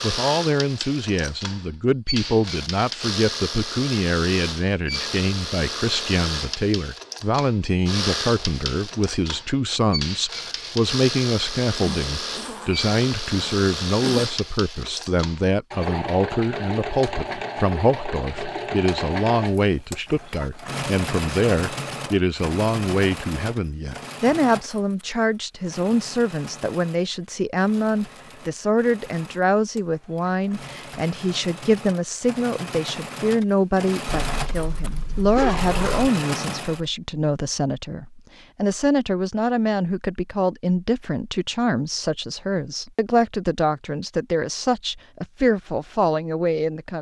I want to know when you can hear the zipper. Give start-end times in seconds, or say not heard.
11.7-14.3, 34.3-36.0.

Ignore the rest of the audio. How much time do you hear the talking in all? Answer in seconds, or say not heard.
47 s.